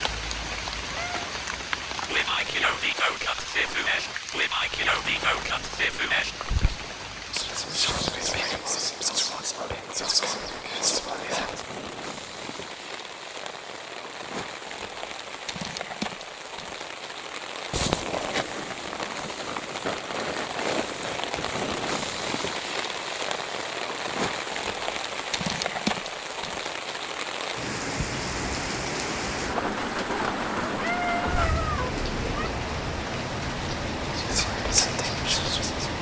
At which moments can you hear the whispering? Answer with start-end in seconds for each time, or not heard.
2.0-11.7, 34.1-35.9.